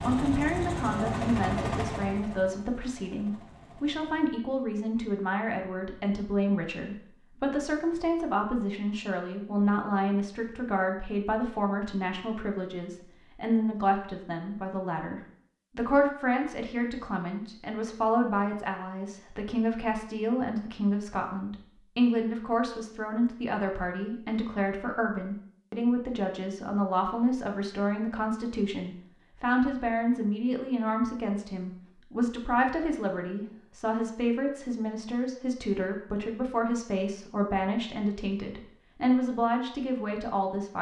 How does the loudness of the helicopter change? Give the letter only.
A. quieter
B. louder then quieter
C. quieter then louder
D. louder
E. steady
A.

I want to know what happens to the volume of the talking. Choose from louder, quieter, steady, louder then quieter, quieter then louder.
steady.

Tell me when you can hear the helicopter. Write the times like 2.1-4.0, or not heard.
0.0-4.3.